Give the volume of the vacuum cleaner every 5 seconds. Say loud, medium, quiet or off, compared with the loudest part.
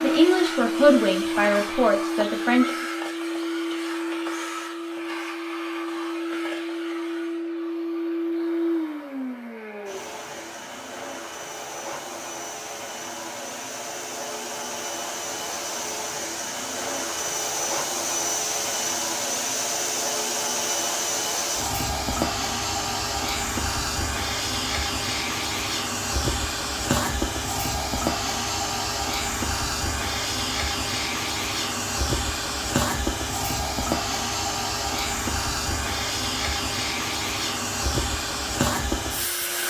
loud, loud, medium, loud, loud, loud, loud, loud.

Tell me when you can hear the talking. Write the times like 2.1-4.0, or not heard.
0.0-2.9.